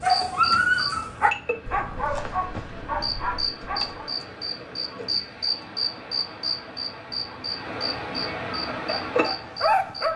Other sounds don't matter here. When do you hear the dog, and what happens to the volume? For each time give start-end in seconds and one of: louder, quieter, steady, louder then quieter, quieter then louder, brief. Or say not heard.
0.0-4.1 quieter
8.8-10.1 brief.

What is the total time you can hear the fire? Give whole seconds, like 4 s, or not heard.
not heard.